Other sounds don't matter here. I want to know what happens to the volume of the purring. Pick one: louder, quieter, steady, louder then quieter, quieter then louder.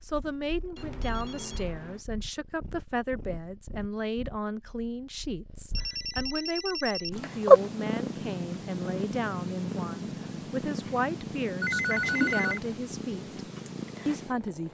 louder then quieter.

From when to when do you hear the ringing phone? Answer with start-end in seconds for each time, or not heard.
0.8-2.0, 5.8-7.1, 11.6-12.6.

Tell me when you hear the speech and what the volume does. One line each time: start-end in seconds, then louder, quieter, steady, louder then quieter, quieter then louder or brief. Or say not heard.
0.0-13.3 steady
14.1-14.6 brief.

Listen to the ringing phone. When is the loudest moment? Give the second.
12 s.